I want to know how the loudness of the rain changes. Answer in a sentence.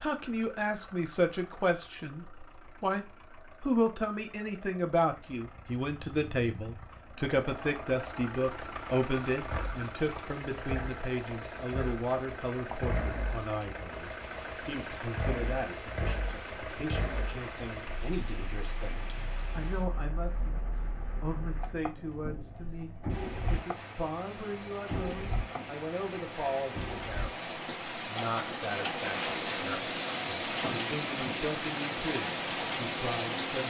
The volume of the rain goes up.